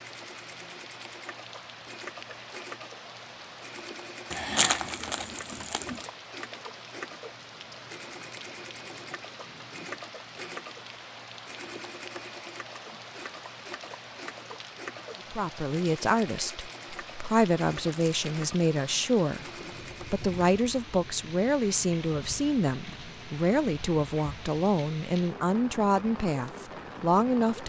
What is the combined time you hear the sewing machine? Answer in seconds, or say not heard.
21 s.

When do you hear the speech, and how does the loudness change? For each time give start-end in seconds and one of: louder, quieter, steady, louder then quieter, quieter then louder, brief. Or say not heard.
15.3-27.6 steady.